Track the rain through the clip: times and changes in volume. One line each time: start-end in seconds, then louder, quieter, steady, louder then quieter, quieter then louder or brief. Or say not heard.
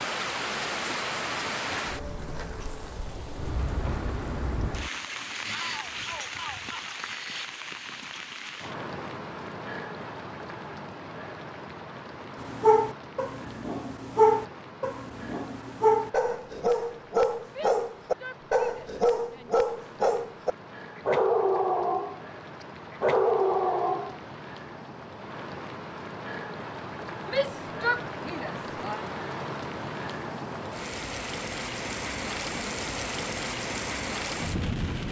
0.0-35.0 quieter then louder.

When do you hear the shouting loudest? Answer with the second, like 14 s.
28 s.